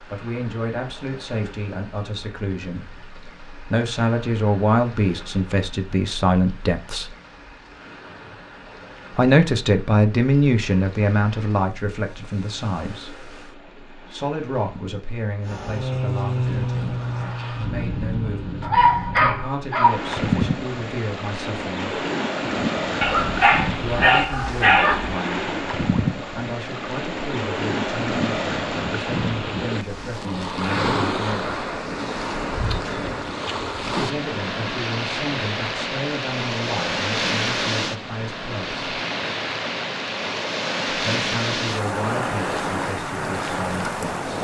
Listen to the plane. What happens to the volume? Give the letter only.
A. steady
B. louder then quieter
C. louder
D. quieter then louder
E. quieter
E.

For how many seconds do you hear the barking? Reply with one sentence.
You can hear the barking for 4 seconds altogether.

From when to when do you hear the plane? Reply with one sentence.
You can hear the plane from 15.4 to 19.4 s.